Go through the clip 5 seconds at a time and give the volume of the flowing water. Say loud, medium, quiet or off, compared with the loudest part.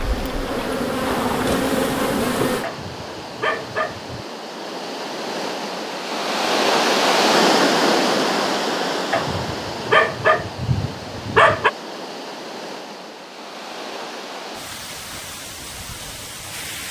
quiet, loud, quiet, quiet.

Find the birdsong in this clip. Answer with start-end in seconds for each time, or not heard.
not heard.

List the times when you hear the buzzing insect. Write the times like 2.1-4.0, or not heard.
0.0-2.6.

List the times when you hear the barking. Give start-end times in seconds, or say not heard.
2.6-4.2, 9.1-11.7.